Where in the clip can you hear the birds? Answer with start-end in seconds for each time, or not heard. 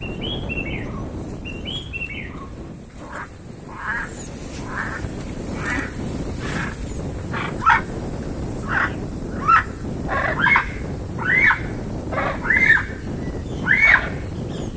0.0-7.8, 8.7-12.9, 13.6-14.6.